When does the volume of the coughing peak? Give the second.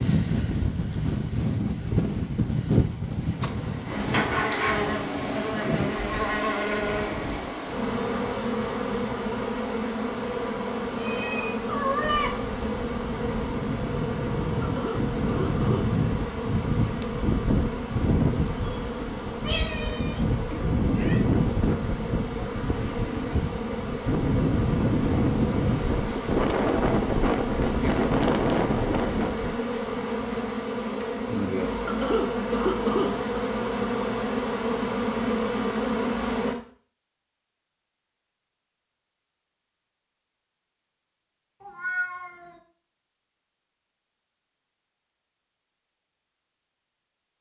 33 s.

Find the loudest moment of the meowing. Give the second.
12 s.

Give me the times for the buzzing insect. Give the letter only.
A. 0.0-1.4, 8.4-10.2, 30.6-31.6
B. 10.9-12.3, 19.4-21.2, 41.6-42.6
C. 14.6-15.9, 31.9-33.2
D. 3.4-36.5
D.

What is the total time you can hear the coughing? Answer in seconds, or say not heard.
3 s.